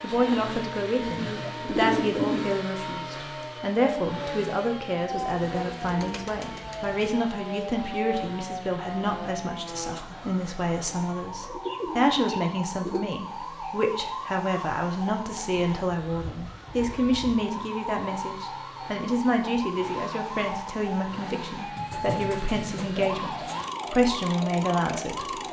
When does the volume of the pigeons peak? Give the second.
2 s.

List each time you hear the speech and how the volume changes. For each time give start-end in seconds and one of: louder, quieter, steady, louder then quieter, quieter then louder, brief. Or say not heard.
0.0-25.2 steady.